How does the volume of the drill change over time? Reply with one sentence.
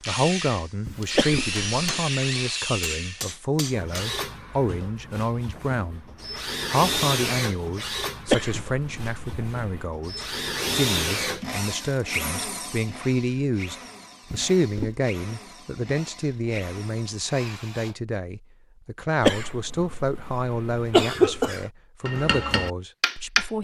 The loudness of the drill goes down.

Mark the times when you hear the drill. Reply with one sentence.
You can hear the drill from 0.0 to 17.9 s.